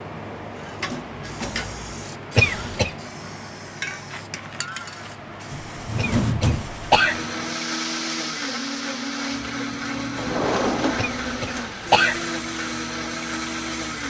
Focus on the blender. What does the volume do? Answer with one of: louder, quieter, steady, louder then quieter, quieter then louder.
steady.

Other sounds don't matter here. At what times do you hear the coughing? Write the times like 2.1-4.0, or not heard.
2.4-3.0, 6.0-7.2, 10.9-12.2.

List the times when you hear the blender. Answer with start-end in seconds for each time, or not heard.
6.9-14.0.